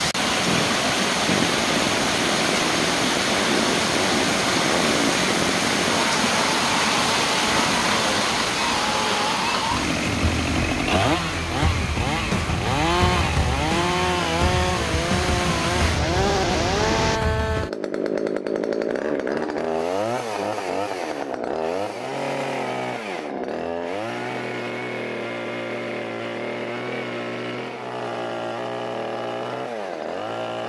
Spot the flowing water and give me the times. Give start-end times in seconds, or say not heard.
0.0-17.2.